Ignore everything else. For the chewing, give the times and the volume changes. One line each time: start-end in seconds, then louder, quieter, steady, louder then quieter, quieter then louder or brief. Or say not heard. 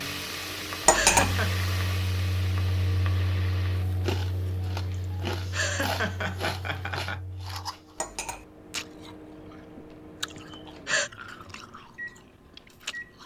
4.0-13.2 quieter.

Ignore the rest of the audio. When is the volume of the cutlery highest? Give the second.
1 s.